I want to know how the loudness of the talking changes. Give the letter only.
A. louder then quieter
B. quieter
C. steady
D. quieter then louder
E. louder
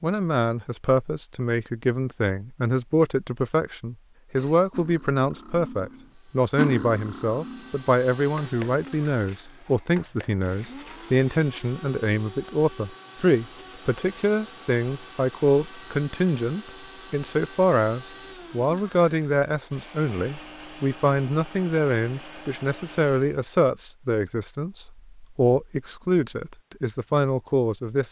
C.